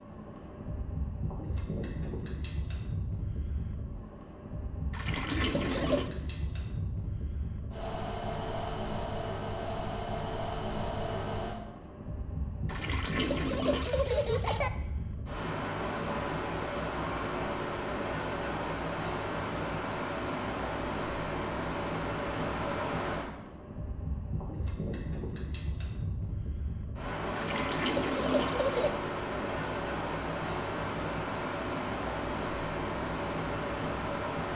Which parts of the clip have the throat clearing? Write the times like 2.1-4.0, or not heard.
5.3-6.0.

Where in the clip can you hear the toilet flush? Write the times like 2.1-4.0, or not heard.
4.9-6.1, 12.7-14.7, 27.4-28.9.